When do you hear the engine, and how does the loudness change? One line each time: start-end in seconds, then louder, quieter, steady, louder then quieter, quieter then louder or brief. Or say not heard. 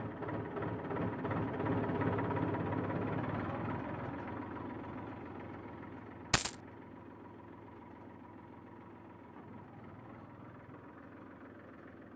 0.0-12.1 quieter.